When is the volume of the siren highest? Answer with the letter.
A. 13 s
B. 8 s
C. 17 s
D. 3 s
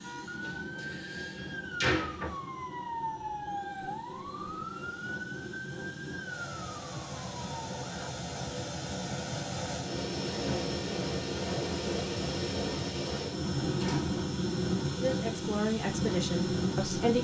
D.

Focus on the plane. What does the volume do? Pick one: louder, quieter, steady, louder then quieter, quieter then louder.
louder.